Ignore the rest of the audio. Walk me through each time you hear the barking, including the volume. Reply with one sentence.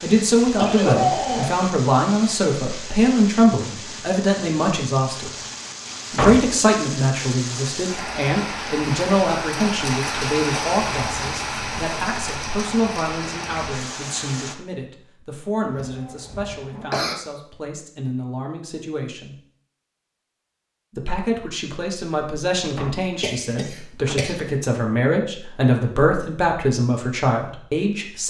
You can't hear the barking here.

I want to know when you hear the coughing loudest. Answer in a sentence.
The loudest moment of the coughing is at 1 second.